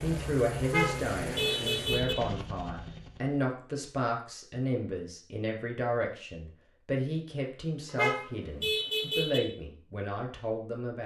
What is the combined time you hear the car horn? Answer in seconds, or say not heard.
3 s.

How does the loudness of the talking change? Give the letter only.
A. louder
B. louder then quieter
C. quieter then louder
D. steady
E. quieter
D.